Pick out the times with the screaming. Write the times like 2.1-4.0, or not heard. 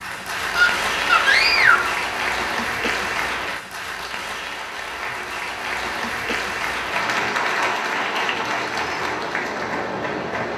0.6-1.9.